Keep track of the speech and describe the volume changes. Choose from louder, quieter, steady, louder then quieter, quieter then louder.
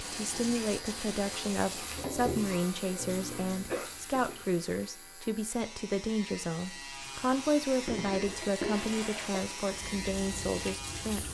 steady.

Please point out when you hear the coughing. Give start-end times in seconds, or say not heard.
3.0-3.9, 8.0-9.4.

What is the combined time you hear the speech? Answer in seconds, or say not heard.
11 s.